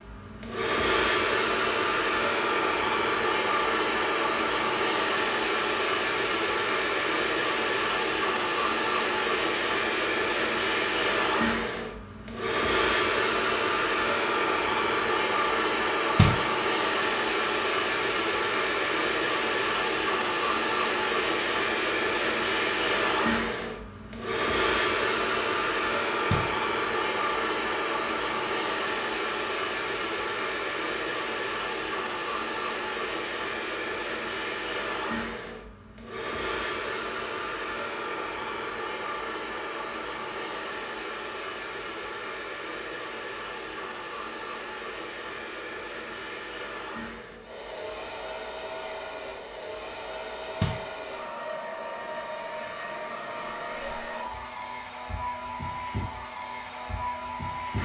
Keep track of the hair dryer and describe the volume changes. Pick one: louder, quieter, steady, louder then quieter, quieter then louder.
quieter.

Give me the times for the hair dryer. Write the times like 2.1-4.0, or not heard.
0.0-57.8.